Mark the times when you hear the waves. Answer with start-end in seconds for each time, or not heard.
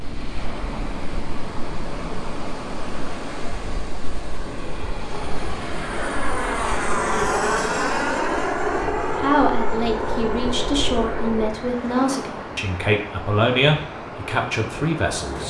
0.0-15.4.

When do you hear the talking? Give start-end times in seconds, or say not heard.
9.2-15.4.